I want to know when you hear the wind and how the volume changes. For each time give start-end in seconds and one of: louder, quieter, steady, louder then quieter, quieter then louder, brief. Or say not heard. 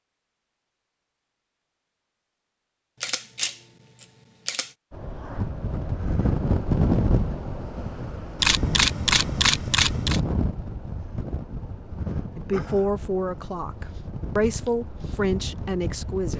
4.9-16.3 quieter.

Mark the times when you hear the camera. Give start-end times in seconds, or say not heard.
3.0-4.7, 8.3-10.2.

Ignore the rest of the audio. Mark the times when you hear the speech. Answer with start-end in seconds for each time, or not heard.
12.3-16.3.